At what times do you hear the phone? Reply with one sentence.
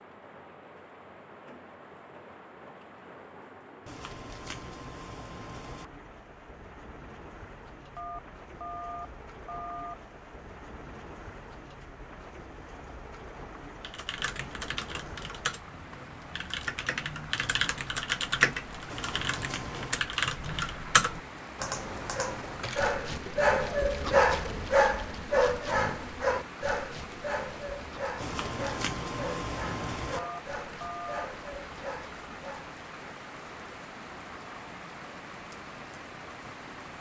The phone can be heard from 8.0 to 9.9 s and from 30.1 to 31.2 s.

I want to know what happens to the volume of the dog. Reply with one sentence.
The volume of the dog goes down.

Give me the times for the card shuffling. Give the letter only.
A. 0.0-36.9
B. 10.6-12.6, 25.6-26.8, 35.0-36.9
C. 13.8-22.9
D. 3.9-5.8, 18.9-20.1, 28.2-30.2
D.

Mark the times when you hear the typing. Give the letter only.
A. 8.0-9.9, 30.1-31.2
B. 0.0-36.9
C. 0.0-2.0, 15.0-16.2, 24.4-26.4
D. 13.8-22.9
D.